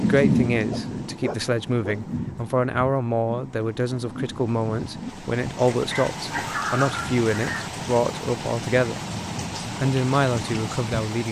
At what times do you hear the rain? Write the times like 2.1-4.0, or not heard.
0.0-11.2.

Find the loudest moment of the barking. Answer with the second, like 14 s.
7 s.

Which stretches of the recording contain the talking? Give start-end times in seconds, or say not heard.
0.0-9.0, 9.8-11.2.